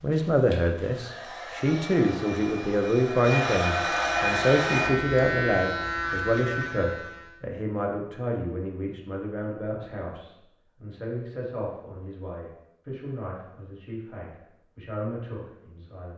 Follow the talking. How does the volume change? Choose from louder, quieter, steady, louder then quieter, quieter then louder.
quieter.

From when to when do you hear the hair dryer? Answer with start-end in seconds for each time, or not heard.
0.0-4.9.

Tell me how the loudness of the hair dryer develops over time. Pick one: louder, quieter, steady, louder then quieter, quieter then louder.
louder.